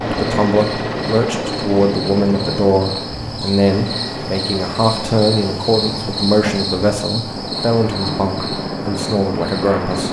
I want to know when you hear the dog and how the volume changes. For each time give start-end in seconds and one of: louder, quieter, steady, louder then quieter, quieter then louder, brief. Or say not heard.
not heard.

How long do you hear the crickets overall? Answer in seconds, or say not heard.
10 s.